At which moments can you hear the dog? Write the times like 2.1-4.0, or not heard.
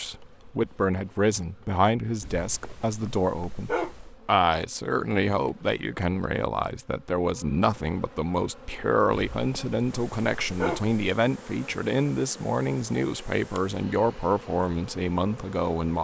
2.2-4.2, 9.1-10.9.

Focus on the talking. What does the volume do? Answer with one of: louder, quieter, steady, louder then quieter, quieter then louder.
steady.